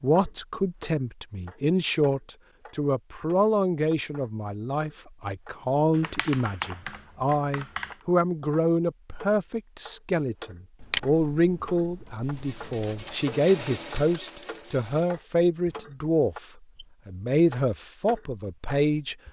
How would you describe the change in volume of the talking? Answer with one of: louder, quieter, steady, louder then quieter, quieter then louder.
steady.